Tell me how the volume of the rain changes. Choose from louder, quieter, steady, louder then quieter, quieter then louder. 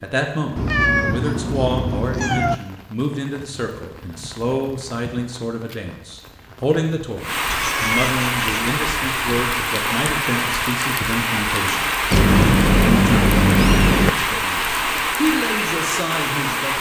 louder.